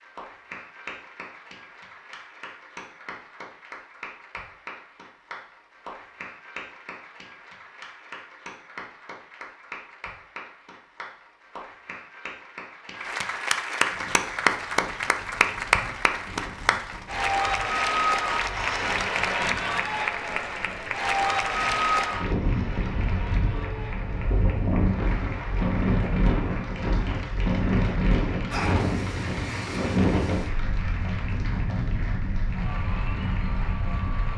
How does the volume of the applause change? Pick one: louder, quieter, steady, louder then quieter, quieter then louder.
louder then quieter.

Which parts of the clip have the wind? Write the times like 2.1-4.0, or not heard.
13.9-34.3.